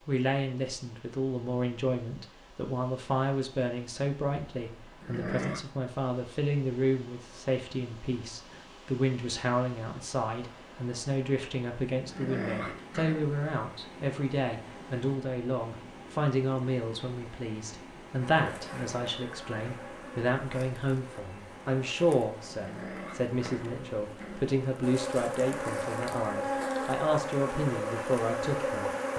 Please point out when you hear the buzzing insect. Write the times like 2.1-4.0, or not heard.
18.2-29.1.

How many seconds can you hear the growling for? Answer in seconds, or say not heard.
4 s.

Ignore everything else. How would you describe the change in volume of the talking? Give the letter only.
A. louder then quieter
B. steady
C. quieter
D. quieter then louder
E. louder
B.